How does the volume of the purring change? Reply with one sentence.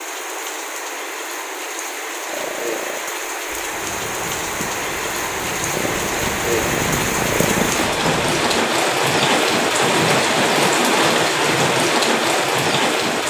The loudness of the purring goes up.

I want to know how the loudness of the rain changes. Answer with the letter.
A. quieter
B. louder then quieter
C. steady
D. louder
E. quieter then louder
D.